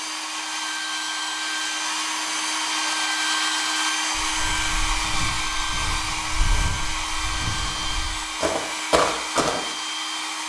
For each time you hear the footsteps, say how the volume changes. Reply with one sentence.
The footsteps can be heard from 4.2 to 9.6 s, getting louder.